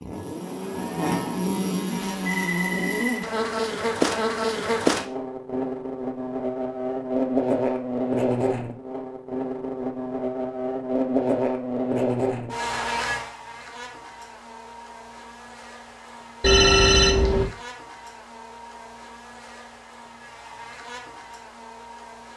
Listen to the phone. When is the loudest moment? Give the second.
17 s.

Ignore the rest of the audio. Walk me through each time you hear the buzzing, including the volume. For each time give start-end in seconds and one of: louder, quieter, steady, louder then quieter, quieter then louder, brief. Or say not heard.
0.0-22.3 quieter.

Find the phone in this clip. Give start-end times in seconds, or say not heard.
2.1-3.2, 16.4-17.4.